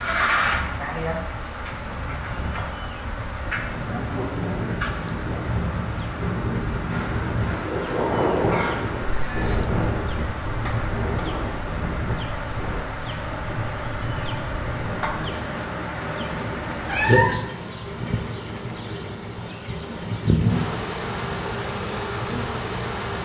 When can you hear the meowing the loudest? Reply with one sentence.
The loudest moment of the meowing is at 17 seconds.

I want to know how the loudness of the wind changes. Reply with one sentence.
The loudness of the wind goes up, then down.